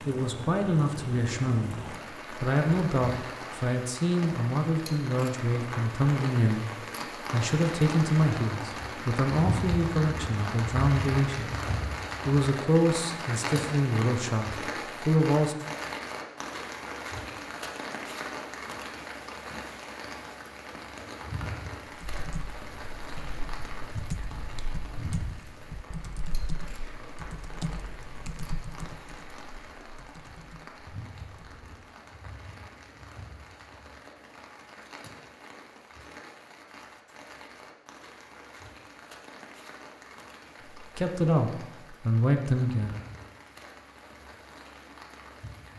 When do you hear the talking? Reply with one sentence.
You can hear the talking from 0.1 to 11.6 s, from 12.2 to 15.6 s and from 40.8 to 42.9 s.